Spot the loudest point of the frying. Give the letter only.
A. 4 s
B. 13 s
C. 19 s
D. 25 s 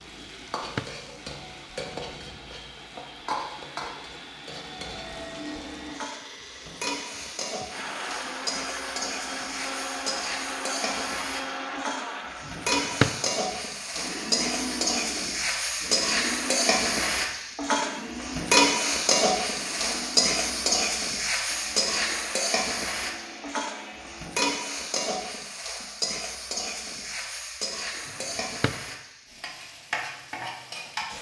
C.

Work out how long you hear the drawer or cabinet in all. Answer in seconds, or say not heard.
2 s.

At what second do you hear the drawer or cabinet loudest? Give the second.
13 s.